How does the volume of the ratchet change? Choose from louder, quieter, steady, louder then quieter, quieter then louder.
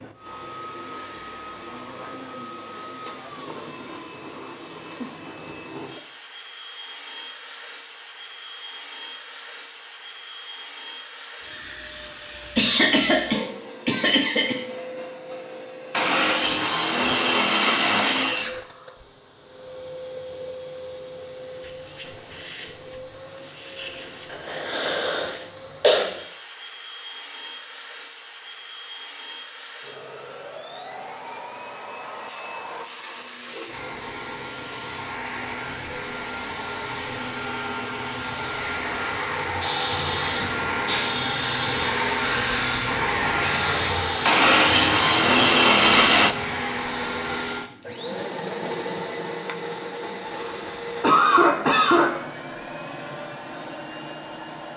steady.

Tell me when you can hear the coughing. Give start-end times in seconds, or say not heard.
12.6-14.6, 24.3-26.1, 50.2-52.1.